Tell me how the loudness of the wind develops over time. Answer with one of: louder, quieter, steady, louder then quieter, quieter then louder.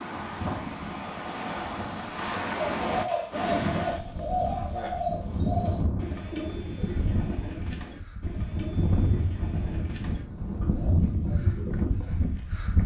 steady.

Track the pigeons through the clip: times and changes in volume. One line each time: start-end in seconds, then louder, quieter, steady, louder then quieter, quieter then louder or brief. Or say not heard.
2.5-11.8 quieter.